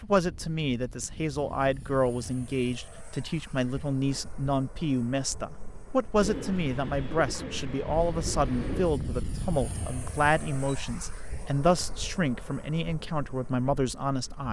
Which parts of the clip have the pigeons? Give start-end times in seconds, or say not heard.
6.2-9.0.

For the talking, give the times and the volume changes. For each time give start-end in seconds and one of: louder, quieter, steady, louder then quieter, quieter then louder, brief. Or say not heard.
0.0-14.4 steady.